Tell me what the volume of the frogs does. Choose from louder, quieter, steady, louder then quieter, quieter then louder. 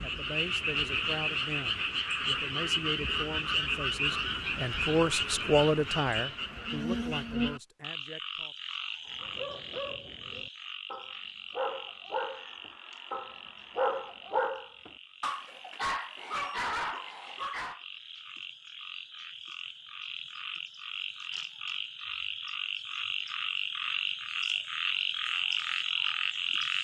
quieter then louder.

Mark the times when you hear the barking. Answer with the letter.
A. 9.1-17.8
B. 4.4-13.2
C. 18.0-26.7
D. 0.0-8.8
A.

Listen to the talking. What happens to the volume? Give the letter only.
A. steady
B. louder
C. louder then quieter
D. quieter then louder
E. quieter
C.